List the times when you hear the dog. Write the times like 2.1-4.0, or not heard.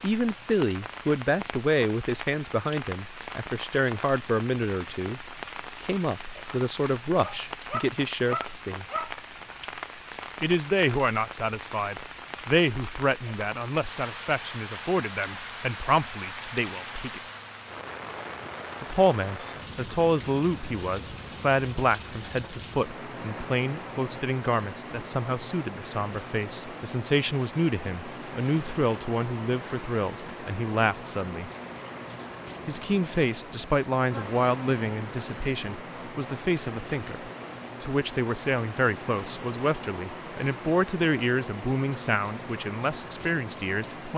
7.2-9.2.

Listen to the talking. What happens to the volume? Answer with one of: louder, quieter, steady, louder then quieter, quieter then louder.
steady.